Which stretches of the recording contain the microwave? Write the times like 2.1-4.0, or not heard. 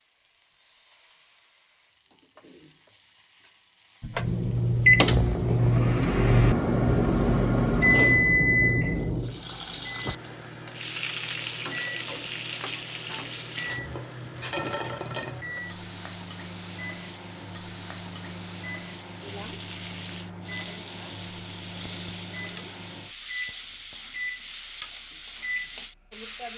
4.0-26.3.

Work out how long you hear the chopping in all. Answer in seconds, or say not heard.
not heard.